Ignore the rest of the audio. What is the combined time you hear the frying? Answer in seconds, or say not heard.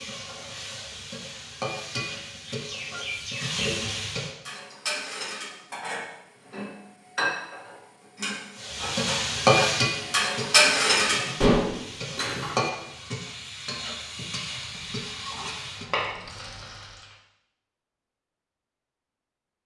13 s.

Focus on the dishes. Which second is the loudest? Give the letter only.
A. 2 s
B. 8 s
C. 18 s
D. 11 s
D.